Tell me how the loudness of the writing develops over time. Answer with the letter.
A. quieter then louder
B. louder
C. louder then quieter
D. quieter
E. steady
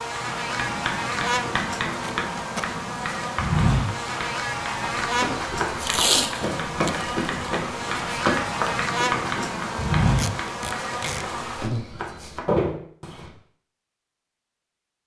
A.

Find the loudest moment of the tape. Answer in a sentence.
The volume of the tape peaks at 6 seconds.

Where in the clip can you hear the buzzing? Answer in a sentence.
The buzzing can be heard from 0.0 to 11.8 s.